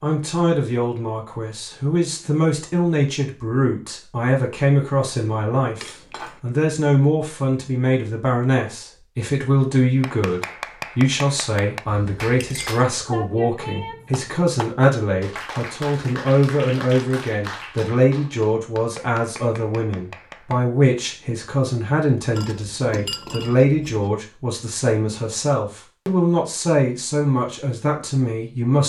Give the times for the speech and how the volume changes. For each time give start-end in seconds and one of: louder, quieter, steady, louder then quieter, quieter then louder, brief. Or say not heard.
0.0-28.8 steady.